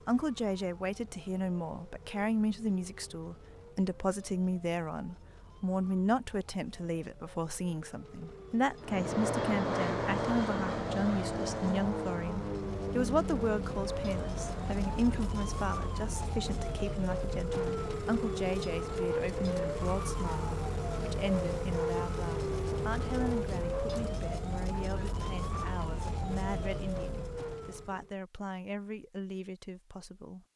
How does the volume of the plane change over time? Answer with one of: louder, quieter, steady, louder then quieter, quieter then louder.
quieter.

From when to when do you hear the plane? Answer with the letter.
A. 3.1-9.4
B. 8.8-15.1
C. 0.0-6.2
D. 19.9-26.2
B.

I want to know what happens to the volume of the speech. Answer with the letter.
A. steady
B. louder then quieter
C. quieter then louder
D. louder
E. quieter
E.